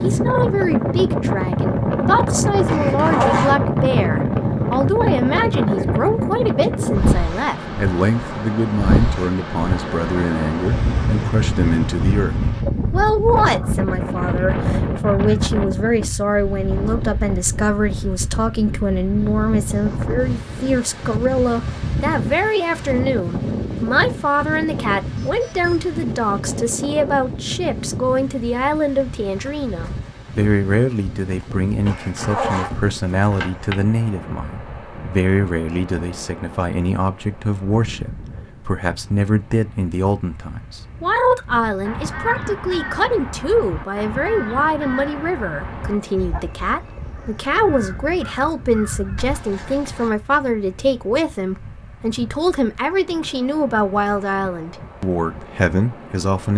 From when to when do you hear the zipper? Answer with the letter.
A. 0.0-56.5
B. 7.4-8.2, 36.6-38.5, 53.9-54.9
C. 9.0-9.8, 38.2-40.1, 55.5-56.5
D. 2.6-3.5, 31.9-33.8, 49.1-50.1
D.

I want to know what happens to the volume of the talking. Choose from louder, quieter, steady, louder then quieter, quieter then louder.
steady.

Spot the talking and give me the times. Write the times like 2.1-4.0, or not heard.
0.0-56.5.